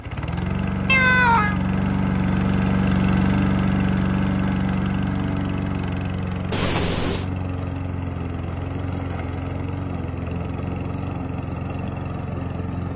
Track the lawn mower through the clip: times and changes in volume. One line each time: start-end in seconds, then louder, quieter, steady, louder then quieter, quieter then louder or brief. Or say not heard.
0.0-12.9 quieter.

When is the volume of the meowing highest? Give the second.
1 s.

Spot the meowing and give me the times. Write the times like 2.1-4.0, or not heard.
0.8-1.6, 6.5-7.2.